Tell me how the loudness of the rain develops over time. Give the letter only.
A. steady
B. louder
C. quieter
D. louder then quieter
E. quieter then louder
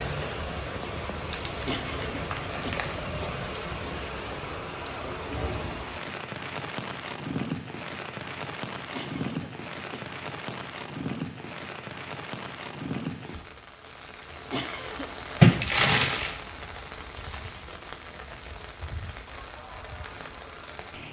C.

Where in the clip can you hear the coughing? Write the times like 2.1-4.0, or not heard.
1.6-3.3, 8.9-10.6, 14.5-15.7.